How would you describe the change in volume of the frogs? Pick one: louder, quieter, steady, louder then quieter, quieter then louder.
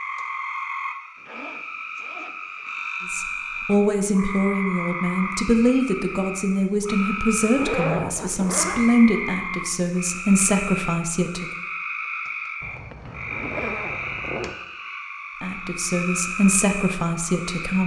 steady.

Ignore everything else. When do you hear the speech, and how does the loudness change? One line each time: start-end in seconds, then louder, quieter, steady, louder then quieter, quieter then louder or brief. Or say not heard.
3.1-11.4 steady
15.4-17.8 brief.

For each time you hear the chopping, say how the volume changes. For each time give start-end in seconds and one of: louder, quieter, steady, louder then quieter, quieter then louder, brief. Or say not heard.
not heard.